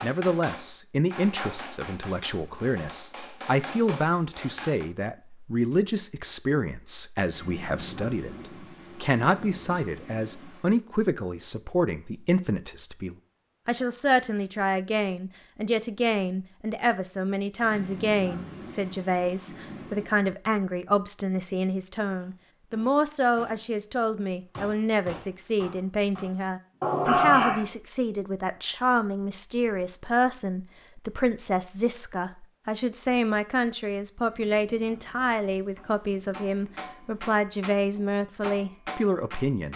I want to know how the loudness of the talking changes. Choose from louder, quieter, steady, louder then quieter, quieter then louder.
steady.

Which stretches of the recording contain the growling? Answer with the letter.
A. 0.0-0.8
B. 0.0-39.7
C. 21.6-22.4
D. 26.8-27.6
D.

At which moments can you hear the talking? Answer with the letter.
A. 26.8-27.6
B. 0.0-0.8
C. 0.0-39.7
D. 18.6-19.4
C.